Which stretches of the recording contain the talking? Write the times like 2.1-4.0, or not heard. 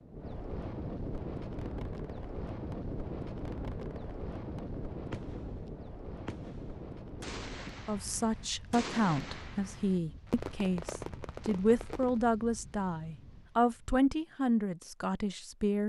7.8-15.8.